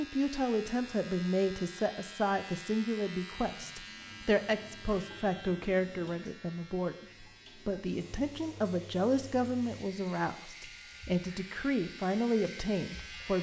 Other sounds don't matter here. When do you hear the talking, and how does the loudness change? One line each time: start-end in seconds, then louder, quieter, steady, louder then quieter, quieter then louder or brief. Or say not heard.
0.0-13.3 steady.